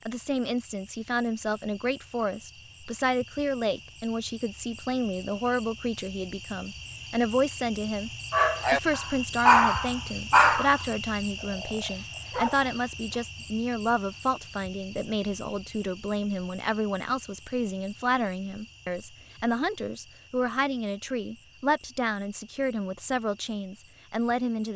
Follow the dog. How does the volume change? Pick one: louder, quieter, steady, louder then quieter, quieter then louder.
louder then quieter.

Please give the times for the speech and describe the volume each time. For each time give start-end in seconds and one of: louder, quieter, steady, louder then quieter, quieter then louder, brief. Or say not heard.
0.1-24.7 steady.